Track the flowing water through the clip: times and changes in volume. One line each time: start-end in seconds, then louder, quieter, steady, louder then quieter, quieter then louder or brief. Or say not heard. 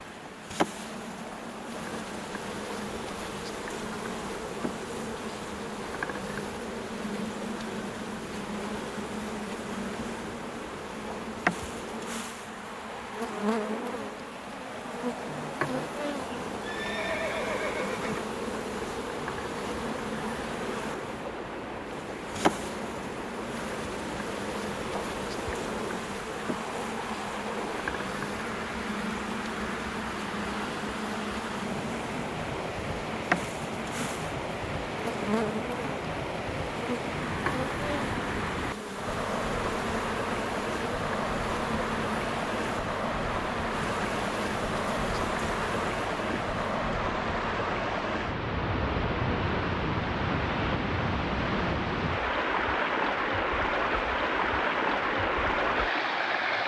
0.0-56.6 louder.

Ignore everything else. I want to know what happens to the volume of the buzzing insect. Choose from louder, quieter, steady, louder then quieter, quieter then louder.
steady.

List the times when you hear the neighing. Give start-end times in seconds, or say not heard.
16.1-18.2.